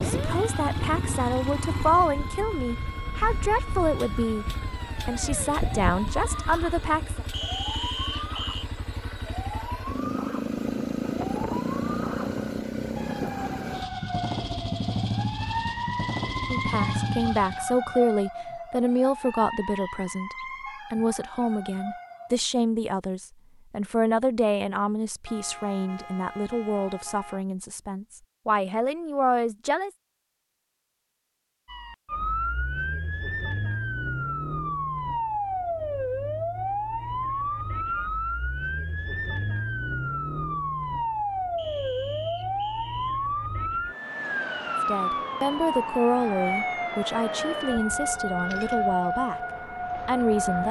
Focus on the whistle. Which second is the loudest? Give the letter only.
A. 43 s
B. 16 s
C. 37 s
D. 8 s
D.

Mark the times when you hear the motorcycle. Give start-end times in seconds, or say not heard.
0.0-17.8.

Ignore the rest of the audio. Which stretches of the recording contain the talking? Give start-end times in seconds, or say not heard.
0.1-4.5, 5.0-7.2, 16.5-29.9, 44.9-49.4, 50.0-50.6.